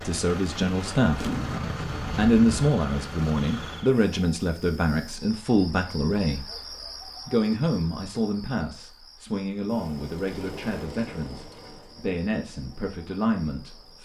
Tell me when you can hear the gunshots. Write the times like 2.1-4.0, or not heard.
1.1-2.6.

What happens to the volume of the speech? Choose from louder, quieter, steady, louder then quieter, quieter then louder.
quieter.